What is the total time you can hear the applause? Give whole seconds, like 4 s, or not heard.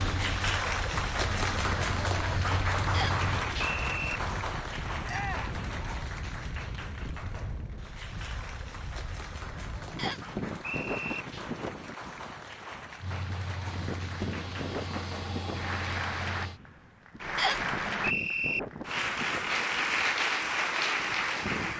22 s.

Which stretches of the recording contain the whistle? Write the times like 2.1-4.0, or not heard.
2.9-4.2, 9.9-11.2, 17.4-18.6.